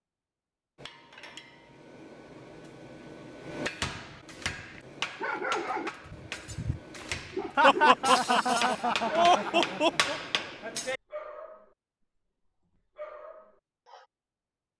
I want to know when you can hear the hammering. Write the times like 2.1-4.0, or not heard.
0.8-11.0.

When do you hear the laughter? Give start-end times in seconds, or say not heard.
7.5-10.2.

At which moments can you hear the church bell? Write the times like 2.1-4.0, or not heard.
not heard.